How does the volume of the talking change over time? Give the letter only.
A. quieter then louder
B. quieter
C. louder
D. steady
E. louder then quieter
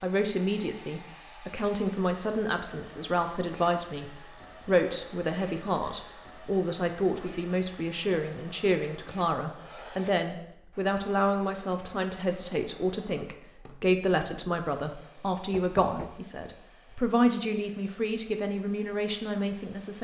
D.